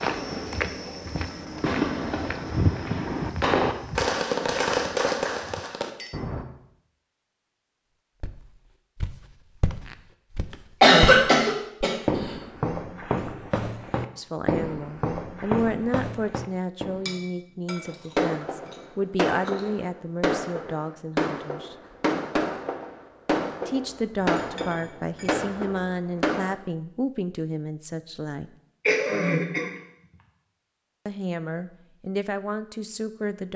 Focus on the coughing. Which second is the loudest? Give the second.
11 s.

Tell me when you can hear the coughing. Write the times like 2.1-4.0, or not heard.
10.8-11.9, 28.9-29.7.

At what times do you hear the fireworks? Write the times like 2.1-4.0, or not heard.
0.0-6.5, 17.9-26.6.